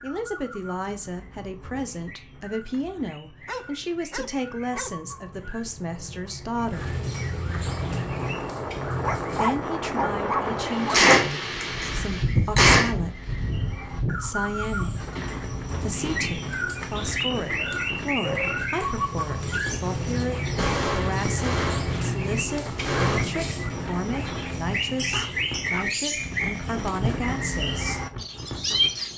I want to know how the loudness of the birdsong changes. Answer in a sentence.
The loudness of the birdsong goes up.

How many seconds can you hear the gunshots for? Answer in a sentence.
You can hear the gunshots for 5 seconds altogether.